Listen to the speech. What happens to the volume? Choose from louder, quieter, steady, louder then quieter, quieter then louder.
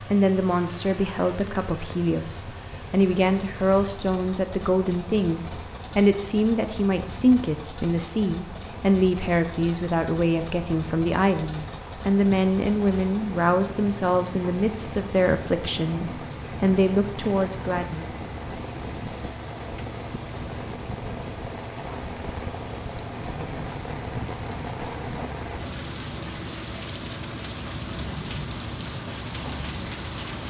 steady.